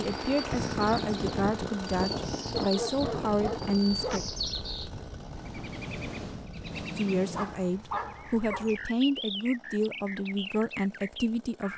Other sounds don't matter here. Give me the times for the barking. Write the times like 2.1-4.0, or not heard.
2.5-4.2, 7.3-8.8.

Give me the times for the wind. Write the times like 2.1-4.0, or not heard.
0.0-6.8.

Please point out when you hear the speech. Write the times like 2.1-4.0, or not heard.
0.0-4.2, 7.0-11.7.